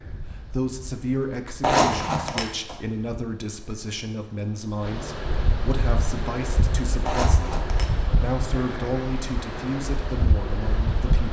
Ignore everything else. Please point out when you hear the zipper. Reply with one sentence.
You can hear the zipper from 1.6 to 2.8 s and from 7.0 to 7.9 s.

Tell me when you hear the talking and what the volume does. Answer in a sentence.
The talking can be heard from 0.3 to 11.2 s, at a steady volume.